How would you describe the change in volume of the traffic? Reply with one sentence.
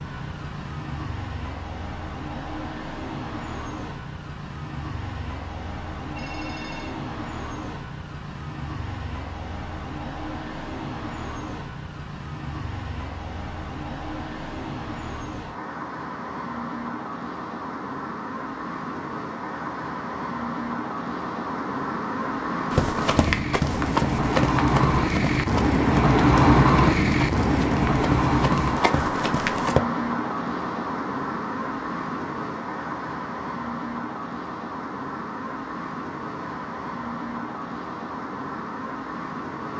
The loudness of the traffic goes up, then down.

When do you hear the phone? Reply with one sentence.
You can hear the phone from 6.2 to 7.0 s.